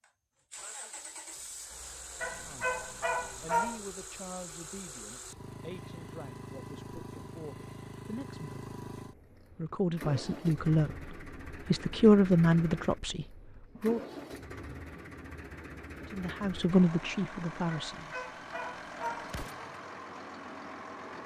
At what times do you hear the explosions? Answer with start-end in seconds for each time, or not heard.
19.2-19.7.